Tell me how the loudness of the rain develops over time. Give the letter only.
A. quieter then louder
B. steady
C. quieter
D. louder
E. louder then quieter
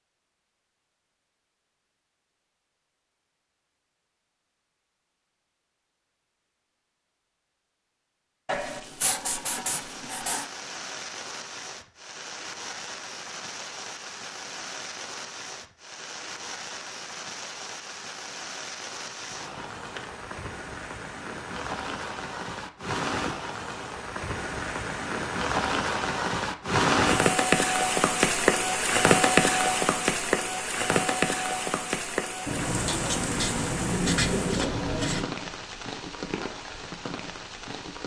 E.